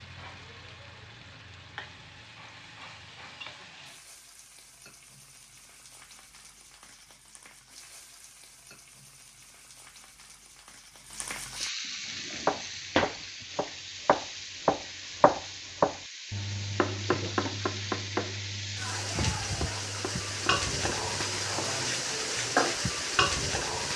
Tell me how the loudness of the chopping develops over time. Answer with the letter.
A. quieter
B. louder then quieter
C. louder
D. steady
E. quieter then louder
B.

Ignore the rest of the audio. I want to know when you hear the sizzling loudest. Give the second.
23 s.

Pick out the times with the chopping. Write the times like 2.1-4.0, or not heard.
12.4-21.9.